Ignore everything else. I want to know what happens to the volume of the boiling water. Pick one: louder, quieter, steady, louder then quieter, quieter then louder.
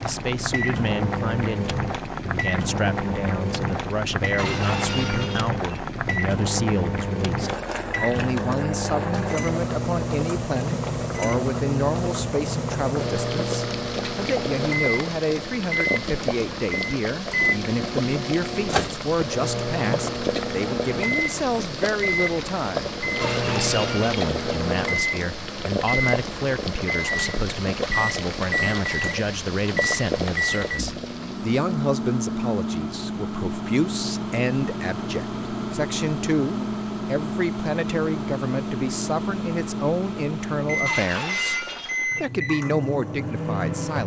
steady.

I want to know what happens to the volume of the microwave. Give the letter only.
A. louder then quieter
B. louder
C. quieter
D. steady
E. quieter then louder
D.